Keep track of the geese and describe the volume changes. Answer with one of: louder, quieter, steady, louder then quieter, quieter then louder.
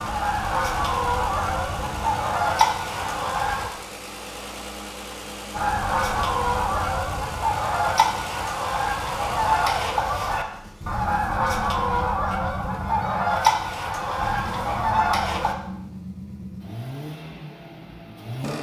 steady.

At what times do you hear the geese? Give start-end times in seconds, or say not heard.
0.0-3.7, 5.5-15.6.